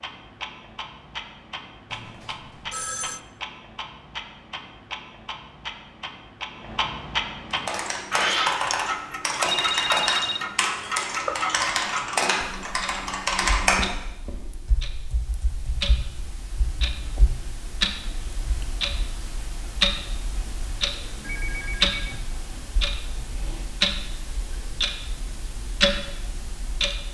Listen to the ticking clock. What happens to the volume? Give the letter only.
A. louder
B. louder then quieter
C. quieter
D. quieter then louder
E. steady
A.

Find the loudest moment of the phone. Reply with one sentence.
The volume of the phone peaks at 10 seconds.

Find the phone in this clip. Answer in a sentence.
You can hear the phone from 1.9 to 3.2 s, from 9.4 to 10.4 s and from 21.2 to 22.2 s.